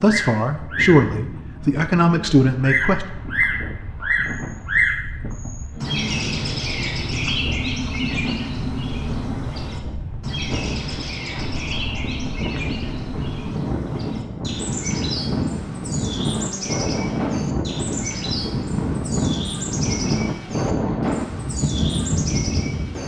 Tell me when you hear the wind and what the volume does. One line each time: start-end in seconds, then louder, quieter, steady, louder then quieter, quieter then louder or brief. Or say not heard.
0.0-23.0 louder.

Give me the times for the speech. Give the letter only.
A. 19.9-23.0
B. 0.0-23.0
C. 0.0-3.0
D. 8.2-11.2
C.